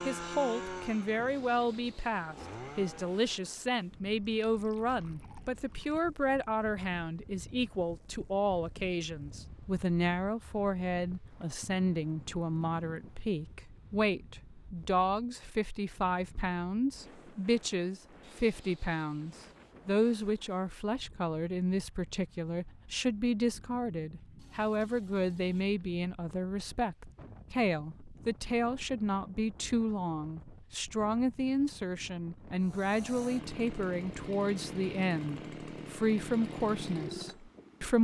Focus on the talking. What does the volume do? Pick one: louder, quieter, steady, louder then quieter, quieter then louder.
steady.